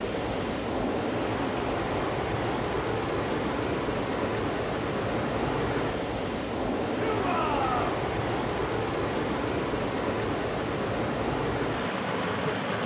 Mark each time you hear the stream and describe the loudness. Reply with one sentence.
The stream can be heard from 0.0 to 12.8 s, at a steady volume.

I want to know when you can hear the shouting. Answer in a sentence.
You can hear the shouting from 7.0 to 7.9 s.